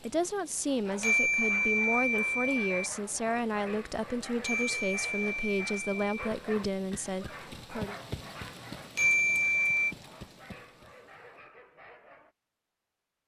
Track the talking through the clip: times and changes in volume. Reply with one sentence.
You can hear the talking from 0.0 to 8.0 s, at a steady volume.